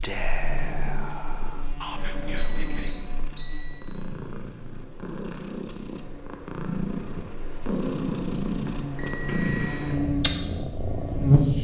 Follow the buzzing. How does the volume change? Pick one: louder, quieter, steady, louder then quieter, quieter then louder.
quieter then louder.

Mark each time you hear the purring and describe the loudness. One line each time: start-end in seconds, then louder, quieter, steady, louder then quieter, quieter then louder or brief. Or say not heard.
0.0-11.6 louder.